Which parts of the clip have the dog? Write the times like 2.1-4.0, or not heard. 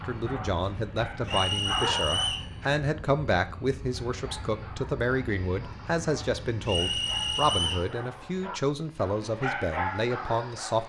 0.0-2.5, 3.9-10.8.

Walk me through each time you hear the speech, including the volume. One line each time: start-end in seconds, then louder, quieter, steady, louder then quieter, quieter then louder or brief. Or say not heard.
0.0-10.8 steady.